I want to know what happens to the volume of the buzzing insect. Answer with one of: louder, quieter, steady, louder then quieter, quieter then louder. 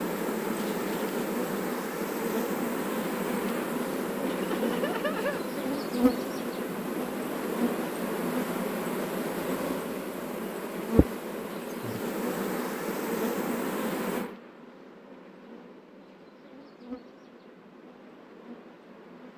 quieter.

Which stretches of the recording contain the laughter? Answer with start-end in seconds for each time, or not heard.
4.2-5.5.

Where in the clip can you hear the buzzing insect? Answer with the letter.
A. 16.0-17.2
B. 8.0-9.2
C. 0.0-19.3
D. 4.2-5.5
C.